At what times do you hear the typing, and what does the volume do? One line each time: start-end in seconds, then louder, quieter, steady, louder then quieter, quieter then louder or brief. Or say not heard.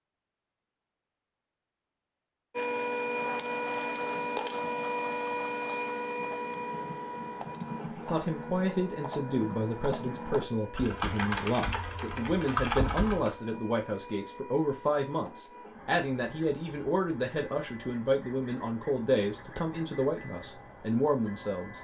3.0-13.3 louder.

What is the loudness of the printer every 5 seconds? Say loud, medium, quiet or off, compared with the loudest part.
loud, medium, quiet, quiet, quiet.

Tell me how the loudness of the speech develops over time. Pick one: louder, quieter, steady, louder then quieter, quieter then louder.
steady.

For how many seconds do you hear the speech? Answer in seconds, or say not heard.
14 s.